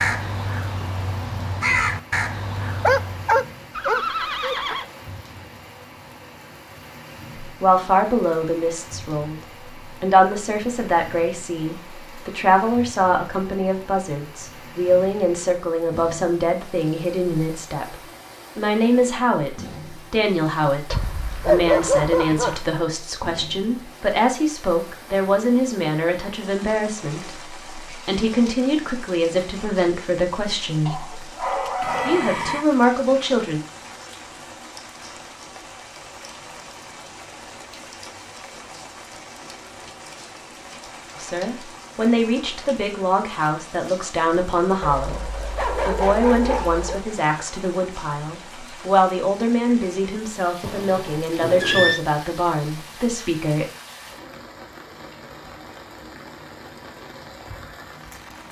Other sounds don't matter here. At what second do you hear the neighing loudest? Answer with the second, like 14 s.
52 s.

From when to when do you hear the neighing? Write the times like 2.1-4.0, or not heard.
3.7-4.8, 31.8-32.6, 50.6-52.0.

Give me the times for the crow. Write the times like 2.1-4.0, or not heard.
0.0-3.4.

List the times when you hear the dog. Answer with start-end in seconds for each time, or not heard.
2.8-4.5, 20.9-22.6, 30.9-32.4, 44.8-47.0.